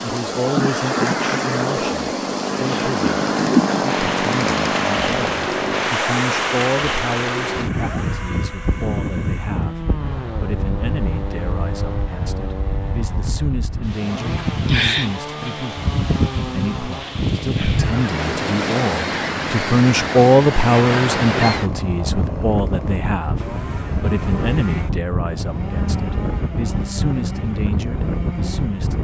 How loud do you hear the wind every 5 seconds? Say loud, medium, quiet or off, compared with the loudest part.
loud, loud, medium, loud, loud, medium.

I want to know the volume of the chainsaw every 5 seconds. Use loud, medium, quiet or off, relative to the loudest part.
loud, medium, medium, medium, medium, medium.